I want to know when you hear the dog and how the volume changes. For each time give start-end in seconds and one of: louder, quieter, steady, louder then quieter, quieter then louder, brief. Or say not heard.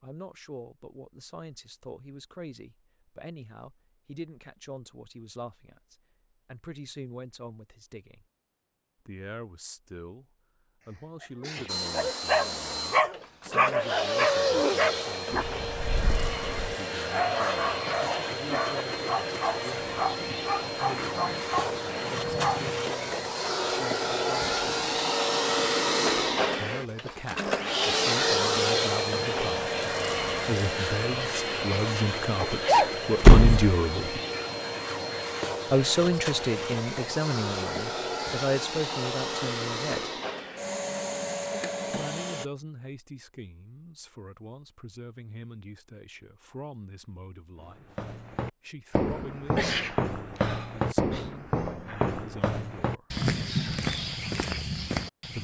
11.9-22.8 quieter.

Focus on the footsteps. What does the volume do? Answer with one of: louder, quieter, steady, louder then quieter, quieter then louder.
steady.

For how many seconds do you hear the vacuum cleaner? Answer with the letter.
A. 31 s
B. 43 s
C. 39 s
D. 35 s
A.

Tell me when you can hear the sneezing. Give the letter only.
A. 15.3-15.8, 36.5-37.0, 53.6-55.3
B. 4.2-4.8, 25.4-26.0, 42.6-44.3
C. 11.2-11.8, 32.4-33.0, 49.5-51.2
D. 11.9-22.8
C.